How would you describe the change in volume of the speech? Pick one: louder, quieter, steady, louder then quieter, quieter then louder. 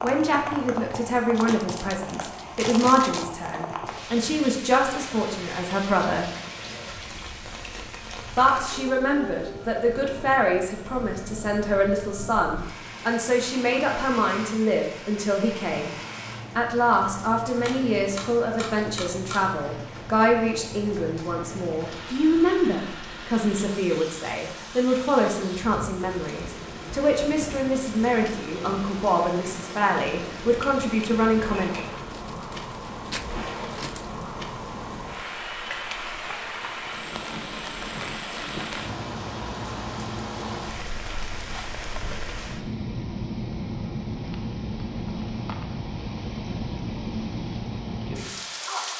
steady.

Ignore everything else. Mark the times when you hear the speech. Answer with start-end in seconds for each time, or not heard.
0.0-6.3, 8.3-15.9, 16.6-31.7.